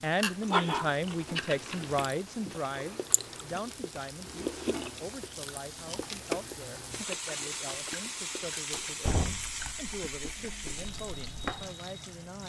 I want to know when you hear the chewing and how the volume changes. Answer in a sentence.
The chewing can be heard from 0.0 to 11.7 s, getting quieter.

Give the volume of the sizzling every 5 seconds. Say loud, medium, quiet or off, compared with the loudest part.
medium, loud, loud.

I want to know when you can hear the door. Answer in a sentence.
You can hear the door from 8.7 to 10.1 s.